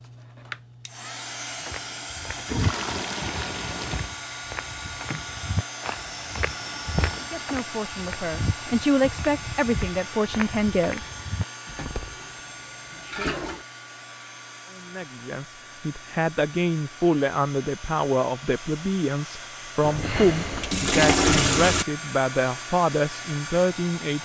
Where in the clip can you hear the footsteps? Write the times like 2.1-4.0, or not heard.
1.6-12.2.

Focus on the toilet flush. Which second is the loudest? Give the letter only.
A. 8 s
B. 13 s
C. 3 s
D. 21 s
D.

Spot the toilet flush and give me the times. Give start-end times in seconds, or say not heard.
2.4-4.2, 11.7-13.7, 19.8-21.9.